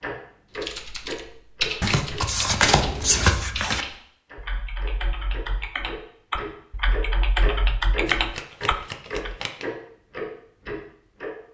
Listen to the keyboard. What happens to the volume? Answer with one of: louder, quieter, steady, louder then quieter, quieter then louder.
quieter then louder.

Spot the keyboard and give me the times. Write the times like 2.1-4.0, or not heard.
0.6-9.3.